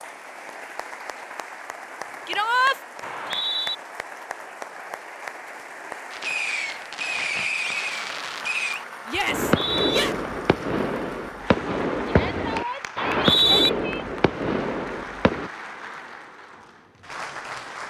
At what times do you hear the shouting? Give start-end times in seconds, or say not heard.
2.2-2.8, 9.1-10.2, 12.1-14.1.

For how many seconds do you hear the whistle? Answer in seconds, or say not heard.
2 s.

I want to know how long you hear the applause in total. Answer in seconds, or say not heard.
18 s.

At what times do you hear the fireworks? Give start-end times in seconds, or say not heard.
6.1-15.5.